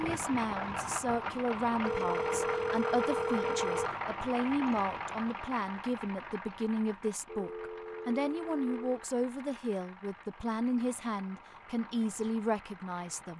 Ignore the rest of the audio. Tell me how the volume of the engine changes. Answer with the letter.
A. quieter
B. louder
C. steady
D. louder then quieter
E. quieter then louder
A.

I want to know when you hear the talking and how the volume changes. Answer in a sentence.
You can hear the talking from 0.0 to 13.3 s, at a steady volume.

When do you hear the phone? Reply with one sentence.
You can hear the phone from 1.9 to 4.0 s and from 7.2 to 9.1 s.